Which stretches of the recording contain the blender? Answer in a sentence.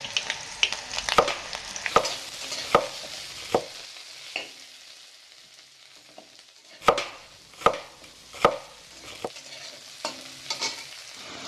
The blender can't be heard in this clip.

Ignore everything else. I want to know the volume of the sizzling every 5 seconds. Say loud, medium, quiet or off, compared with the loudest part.
loud, quiet, loud.